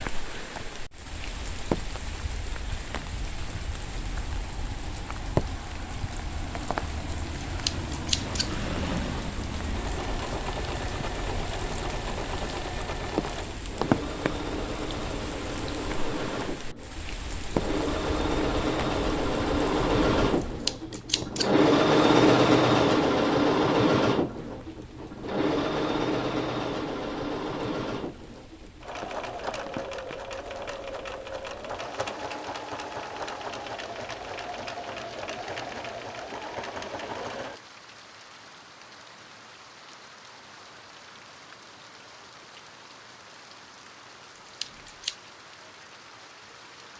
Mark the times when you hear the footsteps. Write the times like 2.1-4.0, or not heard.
not heard.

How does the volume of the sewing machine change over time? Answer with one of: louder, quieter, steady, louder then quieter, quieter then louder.
louder then quieter.